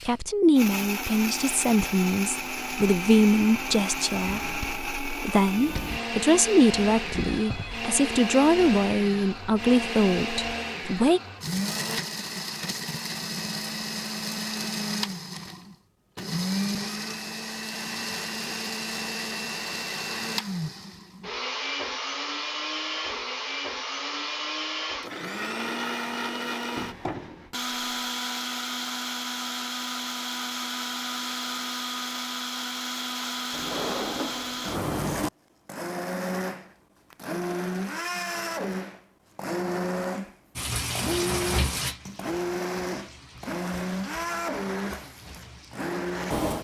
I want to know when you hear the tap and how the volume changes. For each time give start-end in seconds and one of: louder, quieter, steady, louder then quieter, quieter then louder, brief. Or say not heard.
40.5-46.5 quieter.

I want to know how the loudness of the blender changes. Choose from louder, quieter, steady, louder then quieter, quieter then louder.
steady.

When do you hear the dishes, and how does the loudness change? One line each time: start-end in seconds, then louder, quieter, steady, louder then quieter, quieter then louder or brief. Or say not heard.
not heard.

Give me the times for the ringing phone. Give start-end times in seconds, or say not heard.
7.1-7.8.